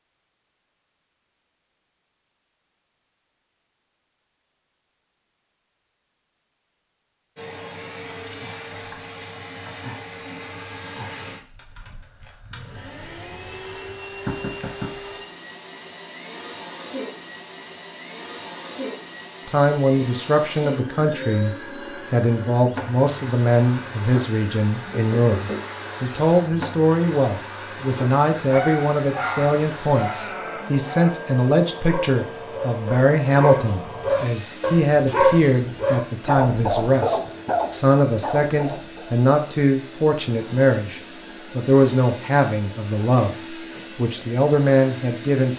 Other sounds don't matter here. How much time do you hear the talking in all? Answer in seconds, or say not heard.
26 s.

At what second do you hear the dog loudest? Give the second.
35 s.